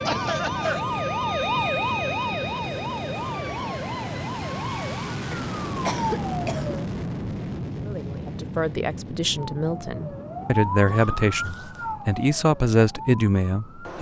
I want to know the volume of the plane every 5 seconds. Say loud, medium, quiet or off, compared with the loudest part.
loud, loud, medium.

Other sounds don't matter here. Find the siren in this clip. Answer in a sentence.
You can hear the siren from 0.0 to 6.8 s and from 9.3 to 13.9 s.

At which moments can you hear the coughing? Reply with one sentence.
The coughing can be heard from 0.1 to 0.8 s, from 4.8 to 6.8 s and from 10.8 to 11.7 s.